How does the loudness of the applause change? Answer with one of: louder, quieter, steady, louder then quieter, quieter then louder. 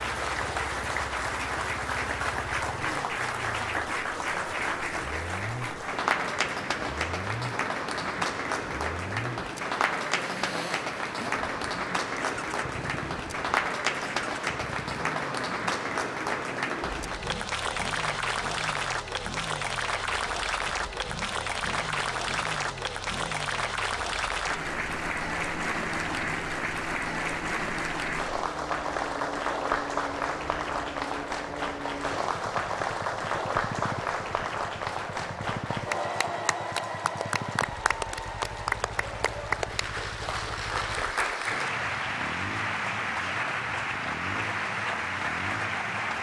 steady.